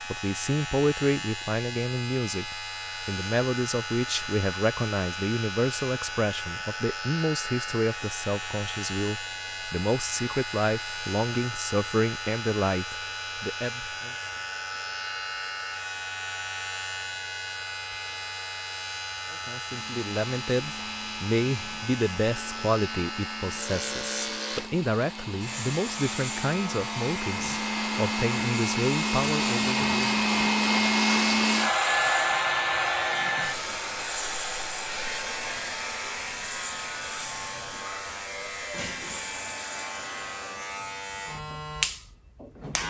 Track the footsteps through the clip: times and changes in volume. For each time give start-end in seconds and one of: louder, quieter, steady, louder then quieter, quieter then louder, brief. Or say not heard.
not heard.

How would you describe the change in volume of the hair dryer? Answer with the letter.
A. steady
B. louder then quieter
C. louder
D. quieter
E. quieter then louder
B.